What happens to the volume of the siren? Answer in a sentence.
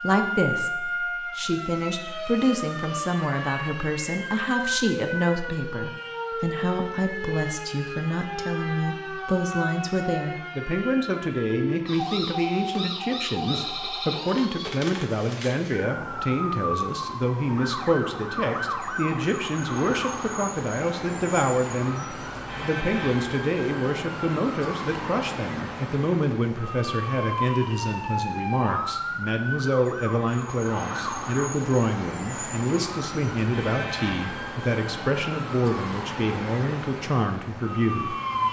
The loudness of the siren stays about the same.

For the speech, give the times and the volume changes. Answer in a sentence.
The speech can be heard from 0.0 to 38.1 s, at a steady volume.